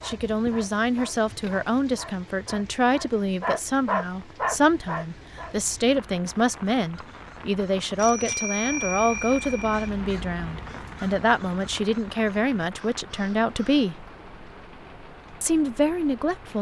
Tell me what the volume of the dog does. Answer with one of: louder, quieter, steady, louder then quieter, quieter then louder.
louder.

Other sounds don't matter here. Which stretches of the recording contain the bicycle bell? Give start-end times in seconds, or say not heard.
8.0-9.9.